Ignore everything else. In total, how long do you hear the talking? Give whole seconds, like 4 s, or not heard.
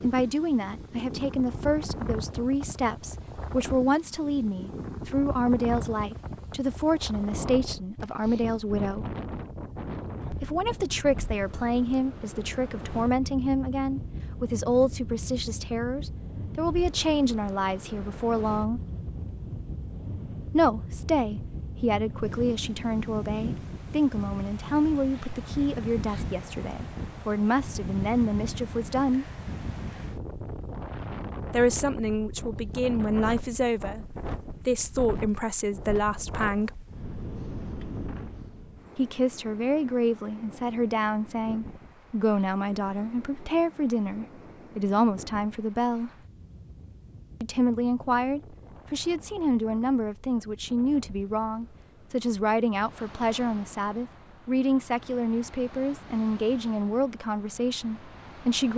50 s.